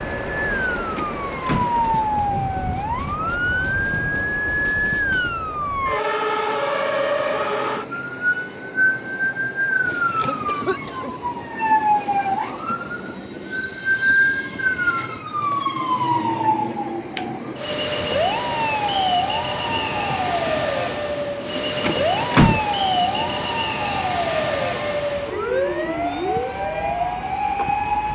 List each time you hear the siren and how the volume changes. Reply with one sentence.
You can hear the siren from 0.0 to 28.1 s, at a steady volume.